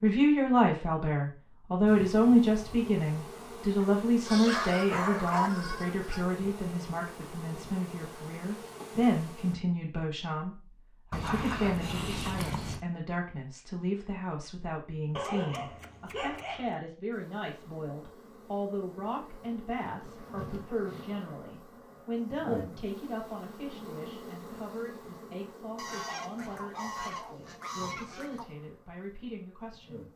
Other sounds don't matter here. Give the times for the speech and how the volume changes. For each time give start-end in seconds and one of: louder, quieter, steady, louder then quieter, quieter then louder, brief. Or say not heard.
0.0-30.1 quieter.